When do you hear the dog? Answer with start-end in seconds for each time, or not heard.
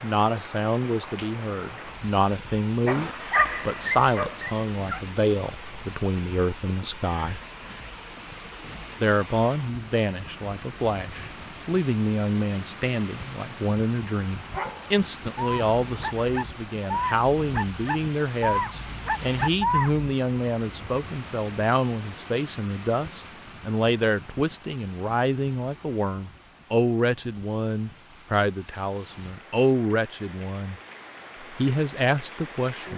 2.9-5.0, 14.5-20.1.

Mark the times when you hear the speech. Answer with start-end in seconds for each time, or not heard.
0.0-7.4, 9.0-30.8, 31.4-32.9.